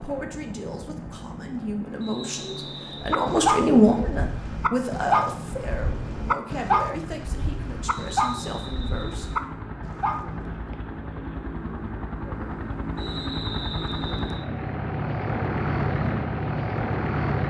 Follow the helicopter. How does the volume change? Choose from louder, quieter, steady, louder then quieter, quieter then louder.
louder.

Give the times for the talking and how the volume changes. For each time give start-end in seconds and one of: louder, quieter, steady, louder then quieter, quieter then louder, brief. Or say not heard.
0.0-9.2 louder then quieter.